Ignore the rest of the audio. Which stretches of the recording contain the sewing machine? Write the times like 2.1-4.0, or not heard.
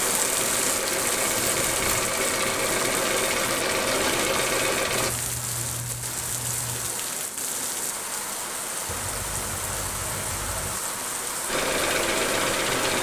0.0-5.1, 11.4-12.9.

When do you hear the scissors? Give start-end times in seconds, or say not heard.
1.4-2.0, 4.8-6.9, 8.8-10.8.